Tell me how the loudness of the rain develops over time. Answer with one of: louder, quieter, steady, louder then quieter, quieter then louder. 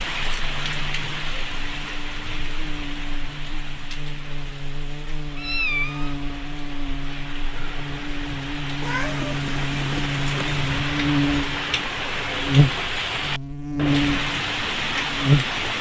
quieter then louder.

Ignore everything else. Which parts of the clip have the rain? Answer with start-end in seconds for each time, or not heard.
0.0-15.7.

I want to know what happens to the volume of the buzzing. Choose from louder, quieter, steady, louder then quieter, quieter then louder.
louder.